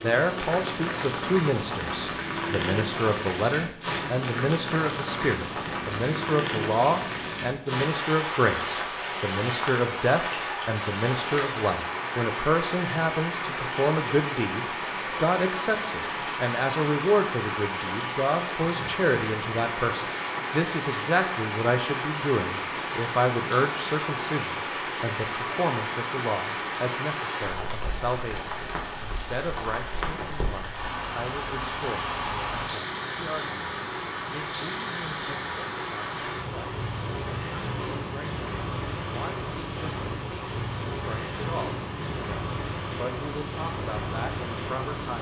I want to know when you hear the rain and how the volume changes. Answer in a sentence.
You can hear the rain from 0.0 to 45.1 s, at a steady volume.